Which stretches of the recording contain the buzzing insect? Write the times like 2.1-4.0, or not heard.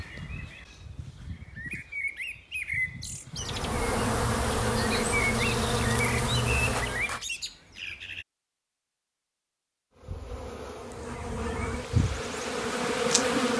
3.4-7.2, 9.9-13.5.